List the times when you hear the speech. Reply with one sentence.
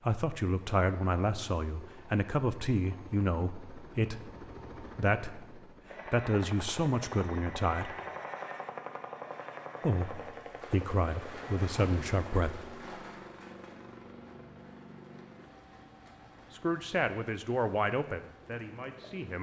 You can hear the speech from 0.0 to 8.0 s, from 9.8 to 12.8 s and from 16.5 to 19.3 s.